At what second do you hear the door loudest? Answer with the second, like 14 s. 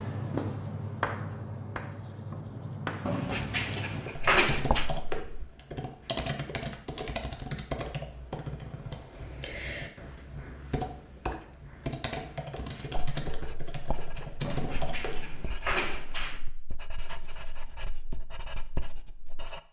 4 s.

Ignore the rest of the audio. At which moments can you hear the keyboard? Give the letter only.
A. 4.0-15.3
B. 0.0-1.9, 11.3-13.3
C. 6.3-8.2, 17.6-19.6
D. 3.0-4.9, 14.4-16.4
A.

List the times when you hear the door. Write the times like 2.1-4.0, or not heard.
3.0-4.9, 14.4-16.4.